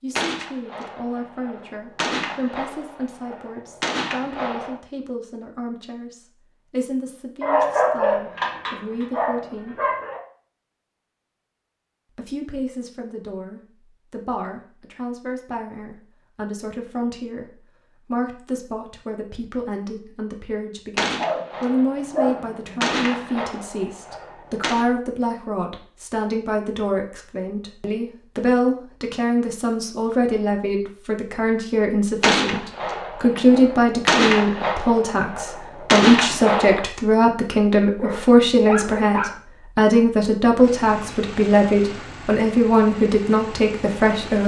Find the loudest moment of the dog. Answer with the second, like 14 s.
8 s.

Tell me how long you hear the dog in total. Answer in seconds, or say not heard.
6 s.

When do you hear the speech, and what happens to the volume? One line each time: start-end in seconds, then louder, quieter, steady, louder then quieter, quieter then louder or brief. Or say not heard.
0.0-9.8 steady
12.2-44.4 louder.